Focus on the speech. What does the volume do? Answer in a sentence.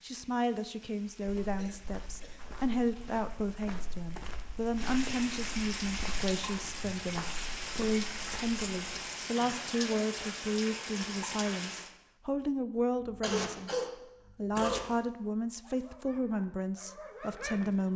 The volume of the speech stays about the same.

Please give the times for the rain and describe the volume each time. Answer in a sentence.
You can hear the rain from 0.0 to 11.9 s, getting louder.